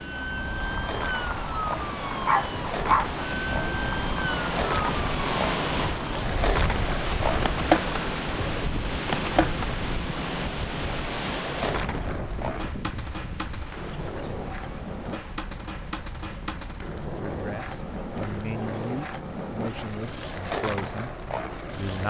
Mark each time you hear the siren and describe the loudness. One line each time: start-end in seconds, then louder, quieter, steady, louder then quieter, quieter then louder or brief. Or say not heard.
0.0-6.2 steady.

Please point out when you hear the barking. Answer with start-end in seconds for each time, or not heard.
2.2-3.1.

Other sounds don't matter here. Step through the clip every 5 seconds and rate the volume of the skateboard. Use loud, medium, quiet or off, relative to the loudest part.
medium, loud, medium, medium, medium.